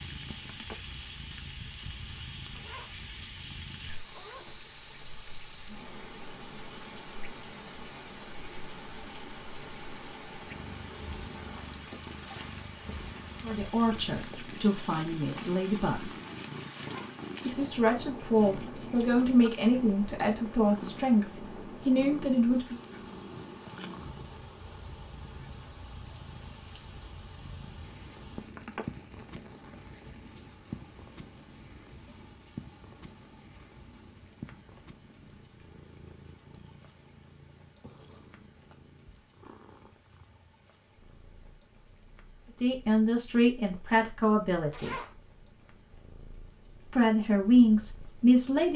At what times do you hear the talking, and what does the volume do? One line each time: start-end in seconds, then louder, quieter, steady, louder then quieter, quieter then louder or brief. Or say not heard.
13.4-16.1 brief
17.4-22.8 steady
42.6-45.0 brief
46.9-48.7 brief.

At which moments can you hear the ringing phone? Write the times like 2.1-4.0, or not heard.
0.3-0.8, 28.4-28.9.